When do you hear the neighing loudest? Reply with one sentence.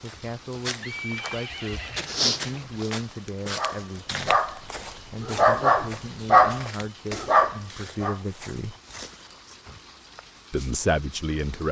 The volume of the neighing peaks at 1 second.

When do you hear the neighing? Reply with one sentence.
You can hear the neighing from 0.8 to 2.7 s.